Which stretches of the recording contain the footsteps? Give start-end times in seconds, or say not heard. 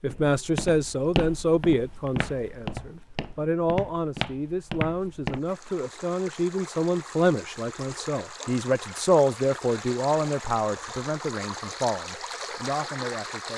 0.1-5.5.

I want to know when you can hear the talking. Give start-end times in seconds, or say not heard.
0.0-13.5.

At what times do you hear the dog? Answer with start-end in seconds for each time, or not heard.
not heard.